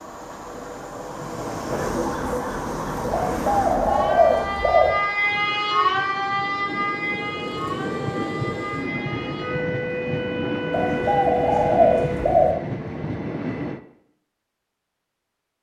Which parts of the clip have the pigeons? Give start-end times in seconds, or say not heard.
3.1-5.0, 10.7-12.6.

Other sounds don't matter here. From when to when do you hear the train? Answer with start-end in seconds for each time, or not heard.
0.0-13.8.